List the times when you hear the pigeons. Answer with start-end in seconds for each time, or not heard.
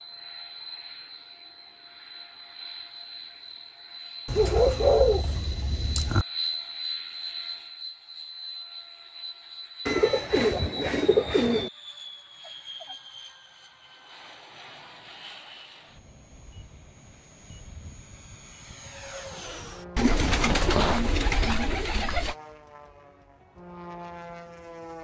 4.2-6.2, 9.8-11.7, 19.9-22.4.